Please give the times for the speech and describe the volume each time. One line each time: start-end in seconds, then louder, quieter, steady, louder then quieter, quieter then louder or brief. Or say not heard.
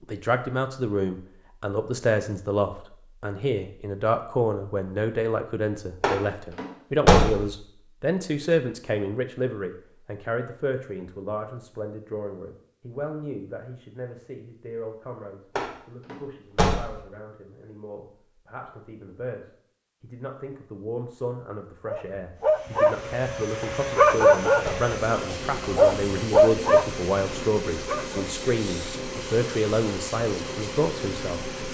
0.0-31.4 quieter then louder.